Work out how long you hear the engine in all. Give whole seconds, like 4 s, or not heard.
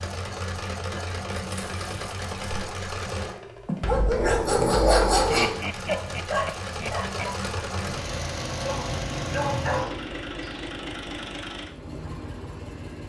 11 s.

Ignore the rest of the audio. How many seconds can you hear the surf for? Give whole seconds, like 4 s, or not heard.
not heard.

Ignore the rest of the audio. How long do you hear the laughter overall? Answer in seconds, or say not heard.
2 s.